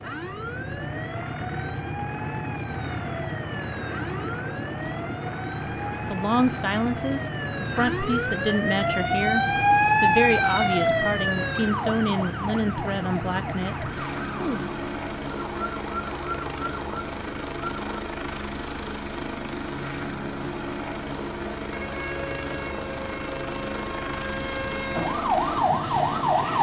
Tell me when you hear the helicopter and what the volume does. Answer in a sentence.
The helicopter can be heard from 0.0 to 26.5 s, at a steady volume.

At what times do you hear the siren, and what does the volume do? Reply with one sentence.
The siren can be heard from 0.0 to 17.9 s, getting louder then quieter; and from 21.7 to 26.5 s, getting louder.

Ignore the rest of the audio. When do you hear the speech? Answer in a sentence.
You can hear the speech from 6.1 to 14.7 s.